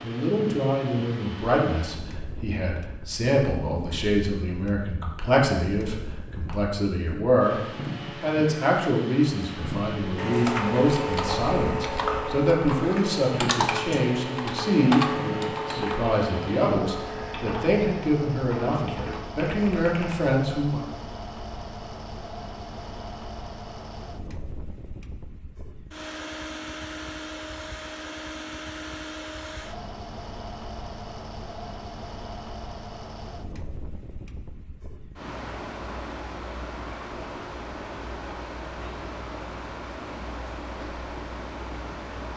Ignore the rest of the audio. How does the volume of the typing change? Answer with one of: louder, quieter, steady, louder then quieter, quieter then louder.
quieter.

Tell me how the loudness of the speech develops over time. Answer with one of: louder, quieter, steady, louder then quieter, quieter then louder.
steady.